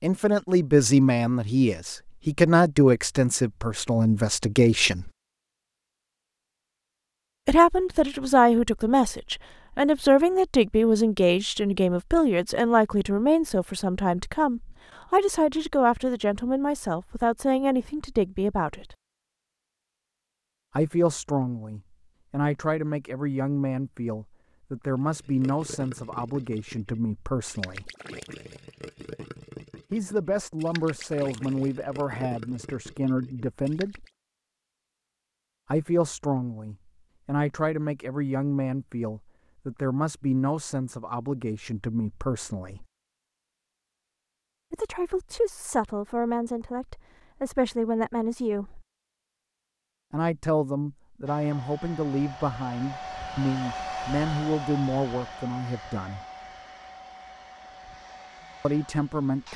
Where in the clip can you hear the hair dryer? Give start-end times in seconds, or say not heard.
51.2-59.5.